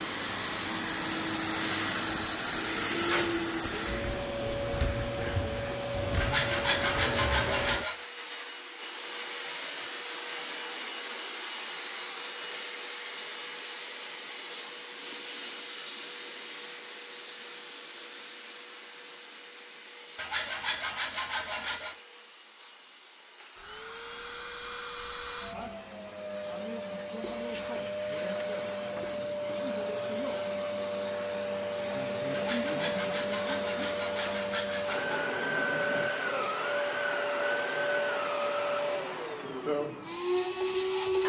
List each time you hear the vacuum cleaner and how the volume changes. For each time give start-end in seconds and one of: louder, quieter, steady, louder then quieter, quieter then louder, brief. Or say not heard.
0.0-41.2 quieter then louder.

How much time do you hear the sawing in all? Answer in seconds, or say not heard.
7 s.